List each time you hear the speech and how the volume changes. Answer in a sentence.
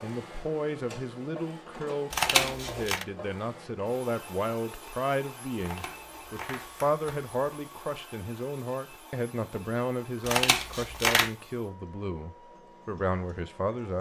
You can hear the speech from 0.0 to 13.9 s, at a steady volume.